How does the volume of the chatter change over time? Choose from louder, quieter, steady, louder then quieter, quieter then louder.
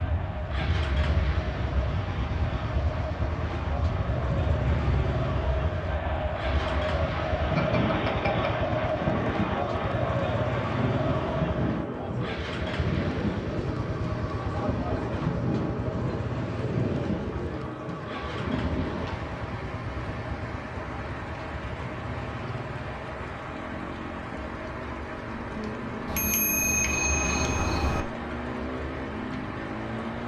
louder then quieter.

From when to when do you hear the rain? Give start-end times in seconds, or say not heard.
0.0-30.2.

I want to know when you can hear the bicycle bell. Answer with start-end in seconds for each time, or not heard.
7.5-8.6, 26.1-28.1.